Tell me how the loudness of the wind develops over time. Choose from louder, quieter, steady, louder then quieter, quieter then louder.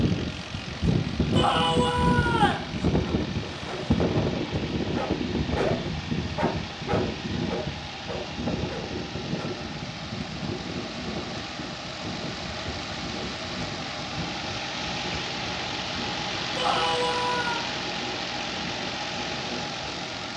quieter.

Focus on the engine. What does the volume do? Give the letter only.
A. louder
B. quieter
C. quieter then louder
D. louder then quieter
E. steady
A.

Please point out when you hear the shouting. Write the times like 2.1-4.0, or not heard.
1.3-2.7, 16.6-17.6.